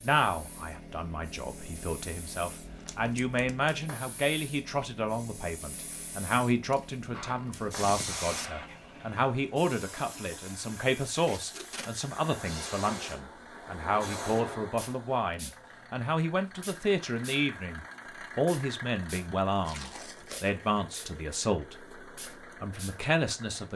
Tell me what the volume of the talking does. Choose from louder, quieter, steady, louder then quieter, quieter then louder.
steady.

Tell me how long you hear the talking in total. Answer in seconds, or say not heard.
24 s.